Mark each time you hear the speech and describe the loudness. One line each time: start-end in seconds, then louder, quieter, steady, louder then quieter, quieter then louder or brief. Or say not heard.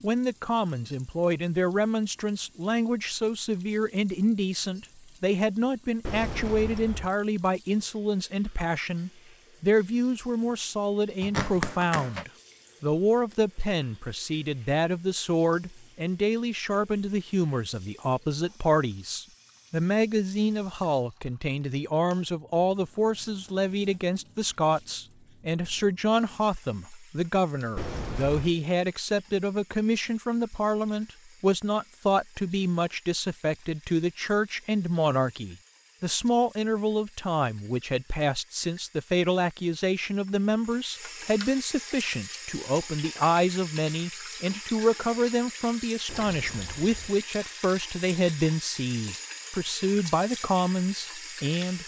0.0-51.8 steady.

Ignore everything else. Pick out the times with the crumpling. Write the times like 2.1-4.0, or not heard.
11.2-12.2.